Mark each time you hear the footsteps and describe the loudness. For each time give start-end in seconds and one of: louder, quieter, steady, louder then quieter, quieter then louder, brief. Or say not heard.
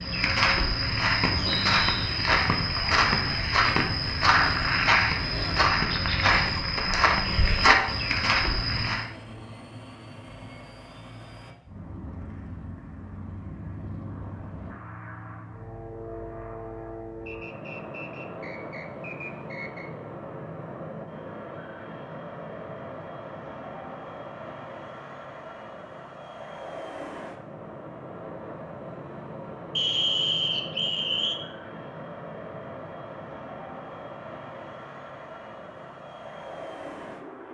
0.0-9.1 steady.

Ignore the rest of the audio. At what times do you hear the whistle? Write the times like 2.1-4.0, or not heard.
1.4-2.1, 17.2-19.9, 29.8-31.4.